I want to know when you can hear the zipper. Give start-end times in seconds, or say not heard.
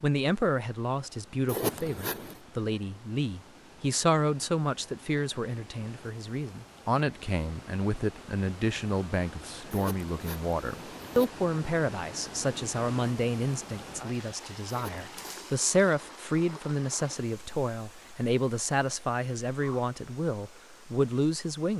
1.4-2.4, 9.7-11.3, 14.7-15.4.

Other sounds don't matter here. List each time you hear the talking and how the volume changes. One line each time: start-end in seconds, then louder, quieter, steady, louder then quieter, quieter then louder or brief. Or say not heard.
0.0-21.7 steady.